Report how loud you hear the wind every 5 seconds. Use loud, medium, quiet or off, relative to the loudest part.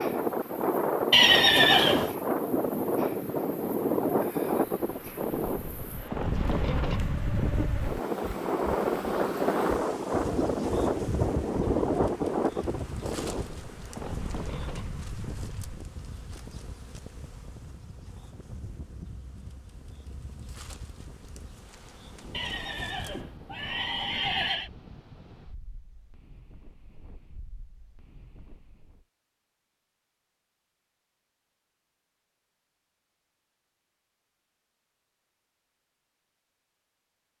loud, loud, loud, quiet, quiet, quiet, off, off.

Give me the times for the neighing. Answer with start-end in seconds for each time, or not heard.
1.1-2.1, 22.3-24.7.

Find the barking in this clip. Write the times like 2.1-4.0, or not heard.
not heard.